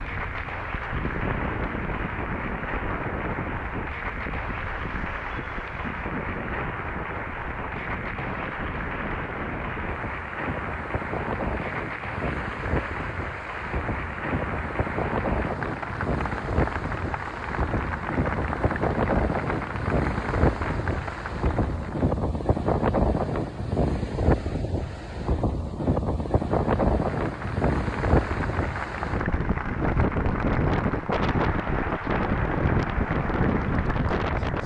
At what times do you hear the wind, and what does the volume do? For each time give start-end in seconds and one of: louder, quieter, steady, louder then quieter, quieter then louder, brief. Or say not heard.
0.0-34.6 louder.